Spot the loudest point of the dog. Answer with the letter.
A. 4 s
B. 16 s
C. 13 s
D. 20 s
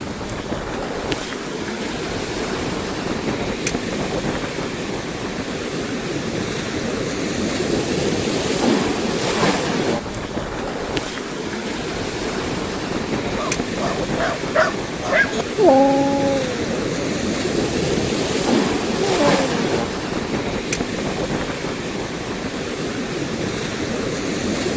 B.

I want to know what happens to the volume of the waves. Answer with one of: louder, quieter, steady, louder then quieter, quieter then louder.
steady.